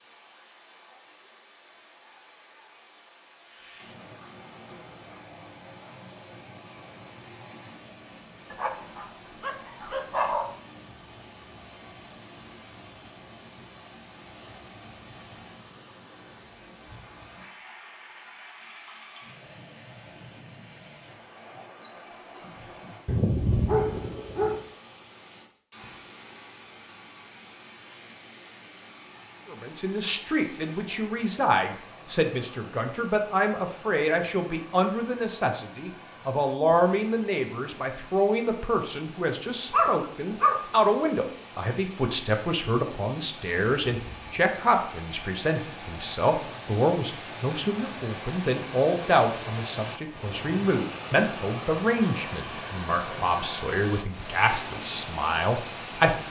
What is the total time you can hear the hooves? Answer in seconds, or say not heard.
not heard.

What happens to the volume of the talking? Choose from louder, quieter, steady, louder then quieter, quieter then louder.
steady.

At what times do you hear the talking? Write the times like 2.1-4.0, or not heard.
29.4-56.2.